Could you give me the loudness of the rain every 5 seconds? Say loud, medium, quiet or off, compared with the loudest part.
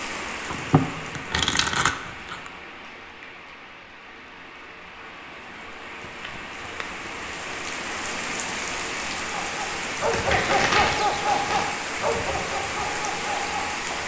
medium, loud, loud.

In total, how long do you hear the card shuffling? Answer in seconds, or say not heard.
5 s.